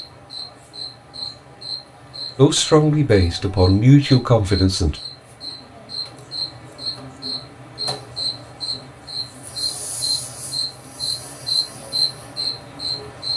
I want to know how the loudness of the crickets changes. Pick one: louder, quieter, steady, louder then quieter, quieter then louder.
louder.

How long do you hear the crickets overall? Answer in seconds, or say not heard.
13 s.